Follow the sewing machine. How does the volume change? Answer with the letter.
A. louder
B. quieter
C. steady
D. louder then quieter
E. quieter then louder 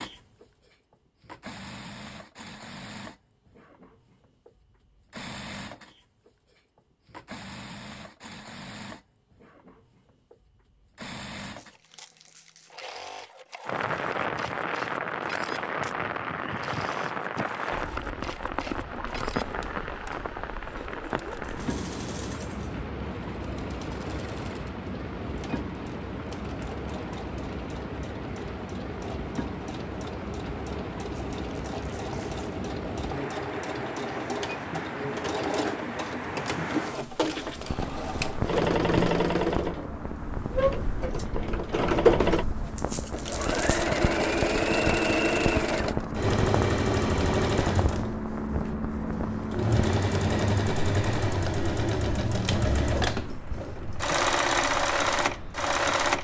A.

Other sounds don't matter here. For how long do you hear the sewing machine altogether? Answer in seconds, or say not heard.
56 s.